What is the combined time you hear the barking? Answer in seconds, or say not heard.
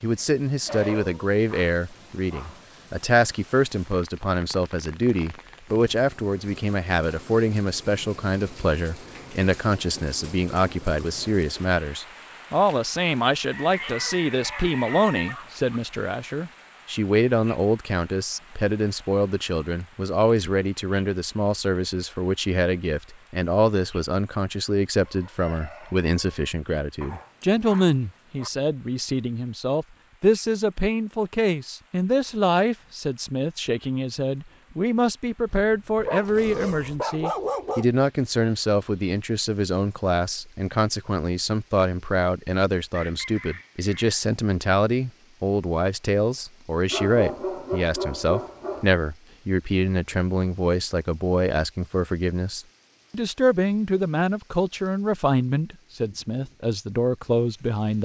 10 s.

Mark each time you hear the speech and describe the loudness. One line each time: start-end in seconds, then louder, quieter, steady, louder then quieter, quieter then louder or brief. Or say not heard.
0.0-57.9 steady.